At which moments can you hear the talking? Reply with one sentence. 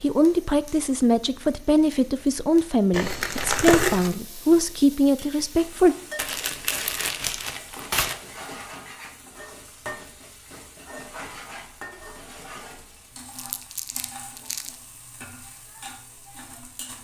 The talking can be heard from 0.0 to 6.0 s.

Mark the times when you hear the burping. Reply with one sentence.
The burping can't be heard in this clip.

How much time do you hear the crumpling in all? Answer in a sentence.
The crumpling can be heard for 5 seconds in total.